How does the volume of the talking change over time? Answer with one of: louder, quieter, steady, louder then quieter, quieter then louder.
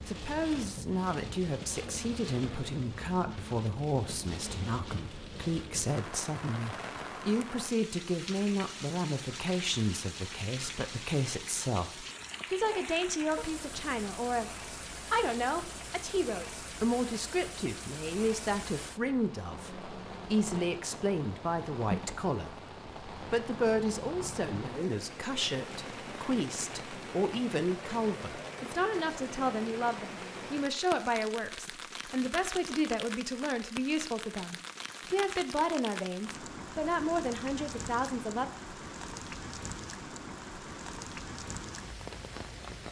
steady.